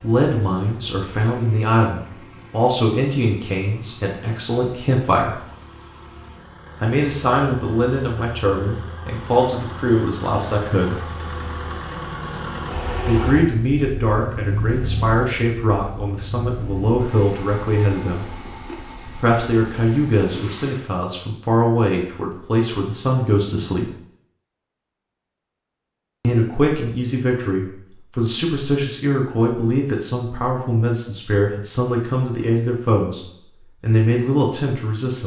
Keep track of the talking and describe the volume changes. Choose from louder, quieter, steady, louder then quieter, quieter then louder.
steady.